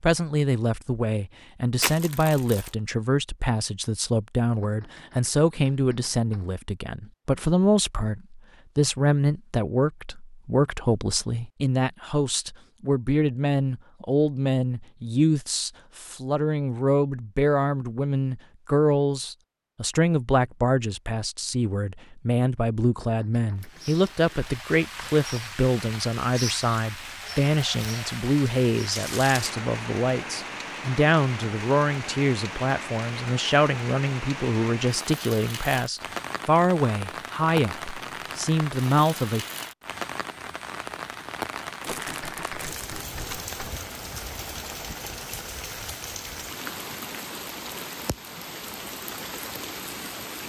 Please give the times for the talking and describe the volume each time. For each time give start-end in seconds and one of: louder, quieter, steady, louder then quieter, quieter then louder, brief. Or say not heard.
0.0-39.5 steady.